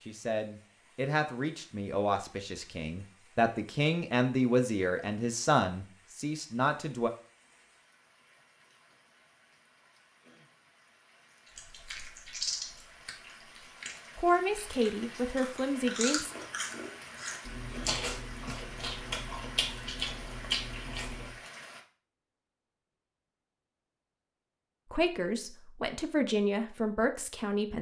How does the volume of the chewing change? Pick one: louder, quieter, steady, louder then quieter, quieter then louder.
quieter then louder.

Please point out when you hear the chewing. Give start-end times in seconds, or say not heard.
11.6-21.4.